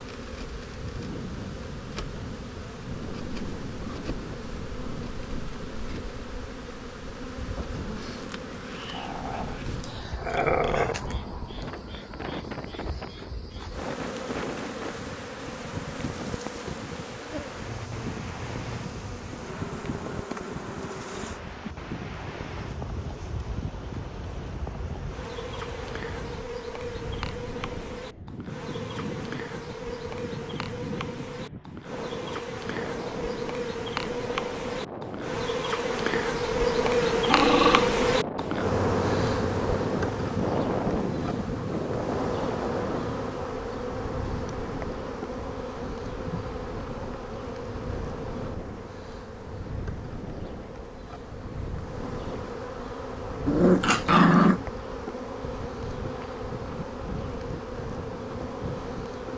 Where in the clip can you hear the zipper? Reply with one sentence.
You can't hear the zipper here.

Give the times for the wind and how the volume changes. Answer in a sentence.
The wind can be heard from 0.1 to 59.2 s, getting louder then quieter.